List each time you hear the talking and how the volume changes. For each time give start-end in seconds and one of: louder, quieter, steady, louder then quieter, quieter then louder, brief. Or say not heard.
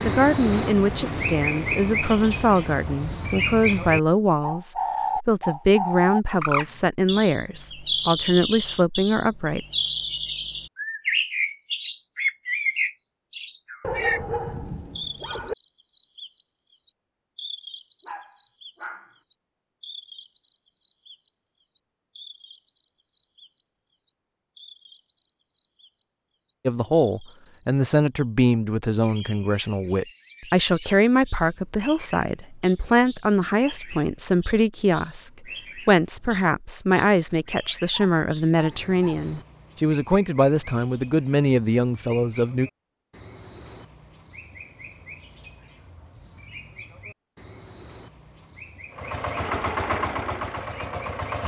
0.0-9.7 steady
26.6-42.7 steady.